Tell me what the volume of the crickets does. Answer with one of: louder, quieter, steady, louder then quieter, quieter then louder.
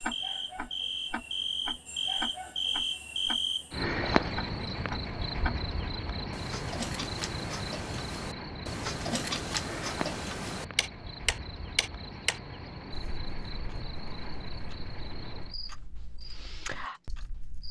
quieter.